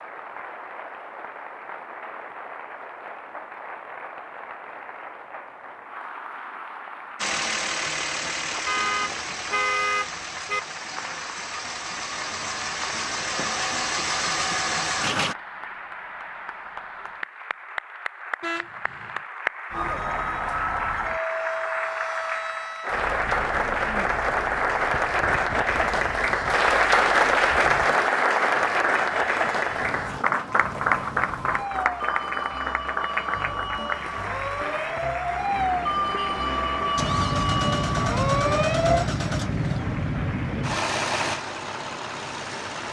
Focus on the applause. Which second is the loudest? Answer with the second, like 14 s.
27 s.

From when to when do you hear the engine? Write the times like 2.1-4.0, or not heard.
7.2-15.3, 37.0-42.8.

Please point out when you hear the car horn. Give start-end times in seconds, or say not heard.
8.7-10.6, 18.4-19.2, 35.4-37.0.